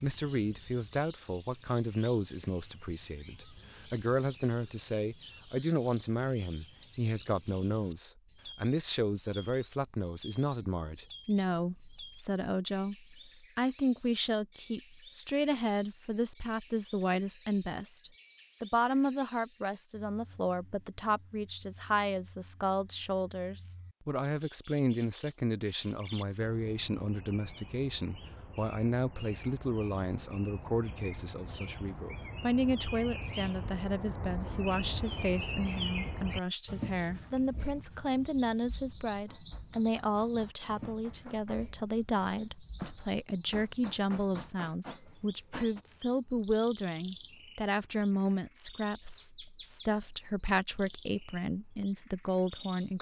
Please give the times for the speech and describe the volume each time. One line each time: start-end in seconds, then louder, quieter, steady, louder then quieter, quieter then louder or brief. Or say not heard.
0.0-52.9 steady.